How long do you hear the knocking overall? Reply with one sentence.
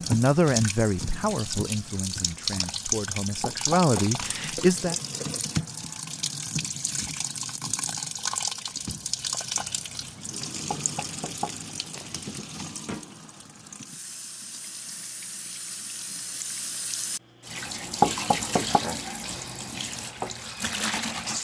The knocking can be heard for 3 seconds in total.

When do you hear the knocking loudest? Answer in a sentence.
The loudest moment of the knocking is at 18 seconds.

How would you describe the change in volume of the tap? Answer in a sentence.
The loudness of the tap goes down, then up.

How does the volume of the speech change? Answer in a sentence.
The volume of the speech goes down, then up.